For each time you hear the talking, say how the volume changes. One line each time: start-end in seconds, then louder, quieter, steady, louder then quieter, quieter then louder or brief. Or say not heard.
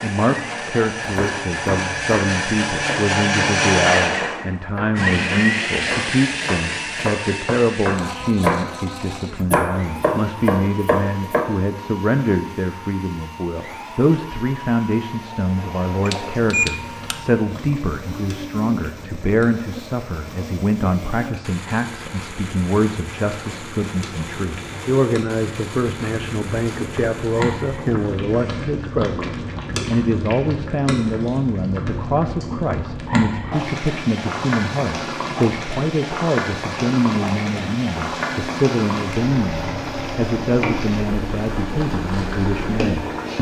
0.0-43.3 steady.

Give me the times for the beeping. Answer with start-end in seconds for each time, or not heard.
16.1-17.1.